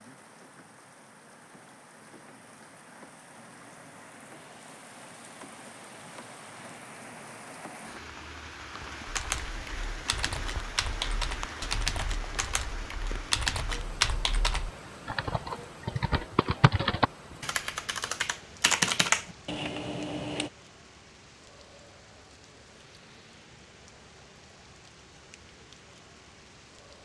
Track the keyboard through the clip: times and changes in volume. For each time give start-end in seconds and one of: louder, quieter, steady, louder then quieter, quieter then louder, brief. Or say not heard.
9.1-20.5 louder.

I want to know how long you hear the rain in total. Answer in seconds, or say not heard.
27 s.